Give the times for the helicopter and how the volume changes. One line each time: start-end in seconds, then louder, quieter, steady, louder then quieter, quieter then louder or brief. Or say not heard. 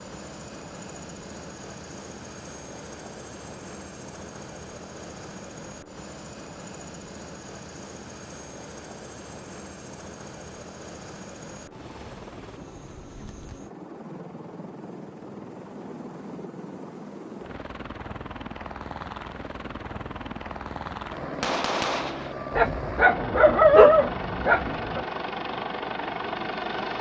0.0-26.9 louder.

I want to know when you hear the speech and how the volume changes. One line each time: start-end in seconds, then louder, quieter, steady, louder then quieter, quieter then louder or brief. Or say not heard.
not heard.